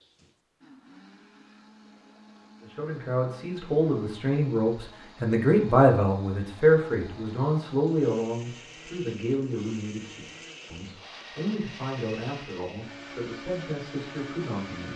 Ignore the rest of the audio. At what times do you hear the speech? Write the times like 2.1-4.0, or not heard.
2.6-14.9.